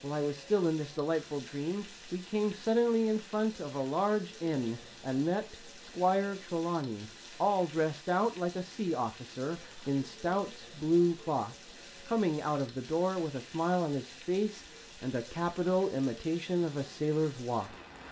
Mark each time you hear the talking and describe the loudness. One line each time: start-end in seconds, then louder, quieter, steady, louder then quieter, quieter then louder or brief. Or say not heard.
0.0-17.7 steady.